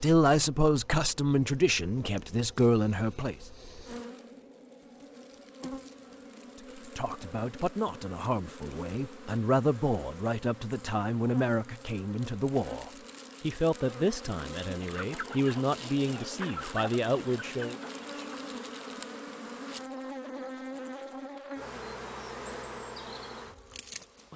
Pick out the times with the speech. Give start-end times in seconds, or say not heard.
0.0-3.4, 6.5-17.8.